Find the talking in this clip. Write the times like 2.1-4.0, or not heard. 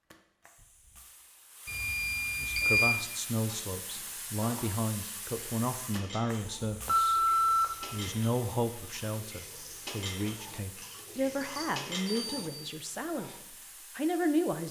2.4-7.2, 7.9-14.6.